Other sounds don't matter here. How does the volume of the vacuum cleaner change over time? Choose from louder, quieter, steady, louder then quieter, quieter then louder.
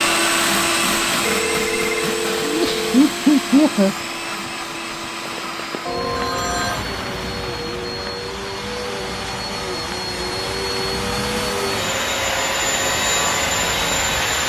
quieter then louder.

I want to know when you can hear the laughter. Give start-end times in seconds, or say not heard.
2.5-4.0.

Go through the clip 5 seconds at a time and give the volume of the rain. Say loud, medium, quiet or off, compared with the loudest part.
off, loud, loud.